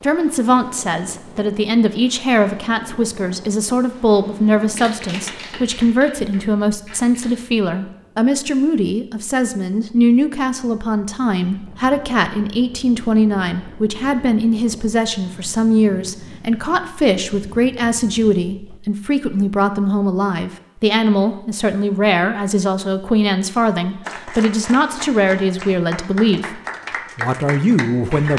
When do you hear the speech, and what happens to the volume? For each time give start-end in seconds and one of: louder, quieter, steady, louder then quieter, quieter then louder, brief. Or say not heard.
0.0-28.3 steady.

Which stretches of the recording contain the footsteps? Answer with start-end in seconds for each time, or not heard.
not heard.